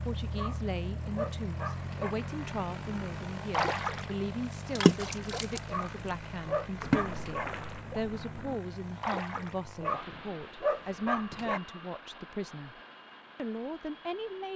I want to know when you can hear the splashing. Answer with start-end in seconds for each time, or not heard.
3.5-4.2, 4.8-6.1, 6.8-9.7.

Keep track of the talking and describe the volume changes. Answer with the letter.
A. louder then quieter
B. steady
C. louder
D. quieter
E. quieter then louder
B.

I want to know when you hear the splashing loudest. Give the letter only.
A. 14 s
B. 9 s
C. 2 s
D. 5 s
D.